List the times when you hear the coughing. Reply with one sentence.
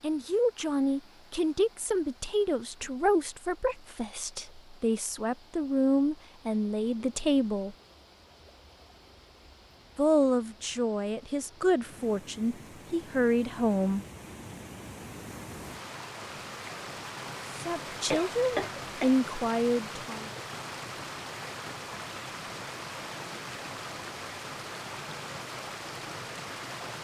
You can hear the coughing from 18.1 to 19.1 s.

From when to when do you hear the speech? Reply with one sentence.
The speech can be heard from 0.0 to 7.8 s, from 9.9 to 14.1 s and from 17.6 to 20.3 s.